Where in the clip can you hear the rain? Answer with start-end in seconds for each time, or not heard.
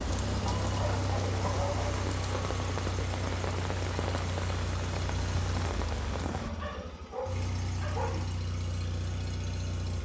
0.0-6.5.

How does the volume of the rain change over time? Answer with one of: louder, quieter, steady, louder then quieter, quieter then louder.
steady.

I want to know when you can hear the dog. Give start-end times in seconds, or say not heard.
0.5-2.0, 6.2-8.2.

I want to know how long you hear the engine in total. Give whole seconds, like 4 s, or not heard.
10 s.